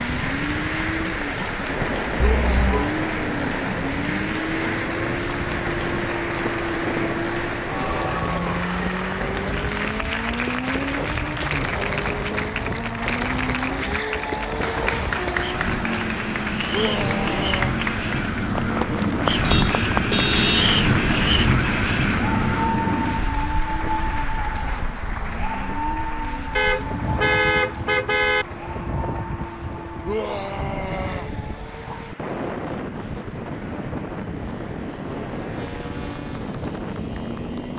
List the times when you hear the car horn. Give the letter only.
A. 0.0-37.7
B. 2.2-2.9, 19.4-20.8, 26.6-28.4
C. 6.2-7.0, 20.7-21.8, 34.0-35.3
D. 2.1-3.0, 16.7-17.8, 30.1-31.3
B.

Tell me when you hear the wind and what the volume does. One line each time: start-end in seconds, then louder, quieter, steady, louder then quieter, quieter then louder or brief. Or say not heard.
0.0-37.7 louder then quieter.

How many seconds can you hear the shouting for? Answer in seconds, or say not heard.
3 s.